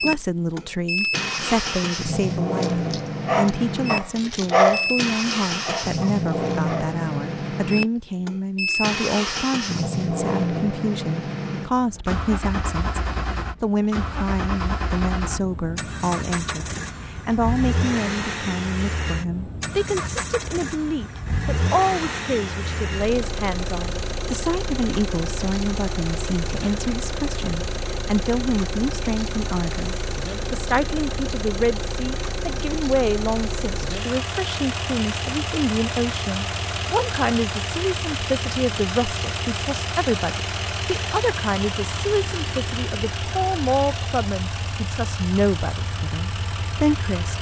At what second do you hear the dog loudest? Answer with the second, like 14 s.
5 s.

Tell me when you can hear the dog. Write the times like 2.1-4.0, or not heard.
2.6-7.0.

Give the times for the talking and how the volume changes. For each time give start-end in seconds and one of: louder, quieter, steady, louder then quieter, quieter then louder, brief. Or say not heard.
0.0-47.3 steady.